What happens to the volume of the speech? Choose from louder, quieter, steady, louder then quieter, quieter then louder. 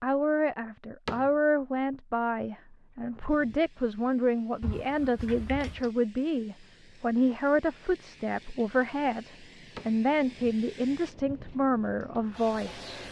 steady.